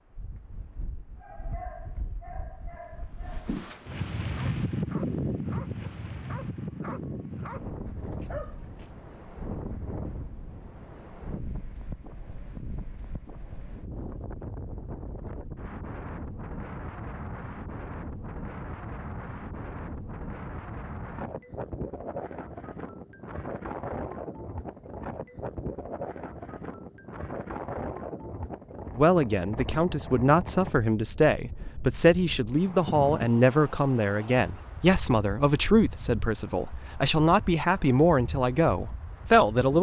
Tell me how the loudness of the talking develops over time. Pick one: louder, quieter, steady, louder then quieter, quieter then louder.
steady.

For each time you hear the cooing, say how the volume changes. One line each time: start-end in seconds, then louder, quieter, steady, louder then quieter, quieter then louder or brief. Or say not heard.
not heard.